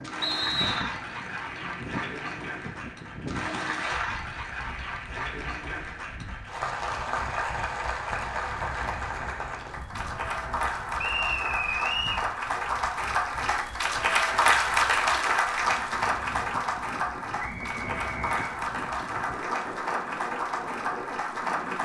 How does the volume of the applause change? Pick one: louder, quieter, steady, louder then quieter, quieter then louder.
louder then quieter.